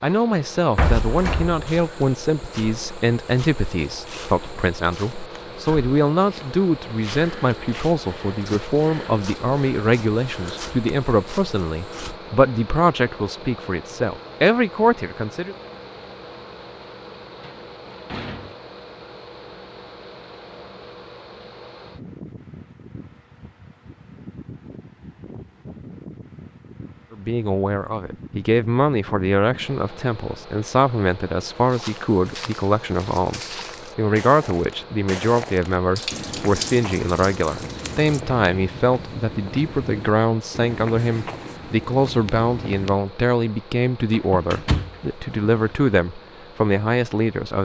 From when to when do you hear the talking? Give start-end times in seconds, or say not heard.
0.0-15.6, 27.1-47.5.